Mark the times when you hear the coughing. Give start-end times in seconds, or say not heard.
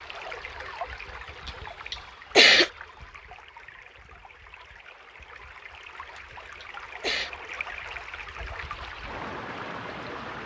1.4-2.7, 6.2-7.3.